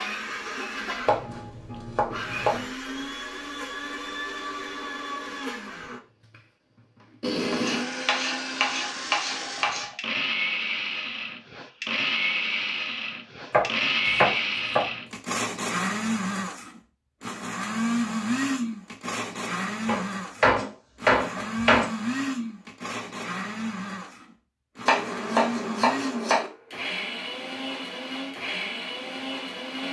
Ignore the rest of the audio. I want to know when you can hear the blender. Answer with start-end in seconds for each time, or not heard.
0.0-29.8.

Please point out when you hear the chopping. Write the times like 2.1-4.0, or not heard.
1.1-2.6, 7.3-9.9, 13.5-14.8, 19.9-21.9, 24.9-26.5.